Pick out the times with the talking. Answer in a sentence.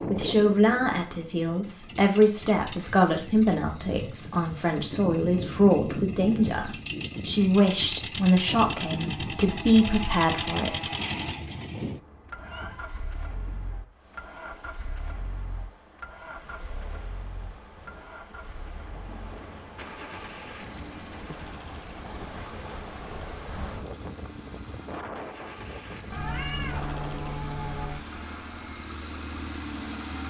The talking can be heard from 0.1 to 10.8 s.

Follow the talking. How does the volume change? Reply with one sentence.
The volume of the talking stays about the same.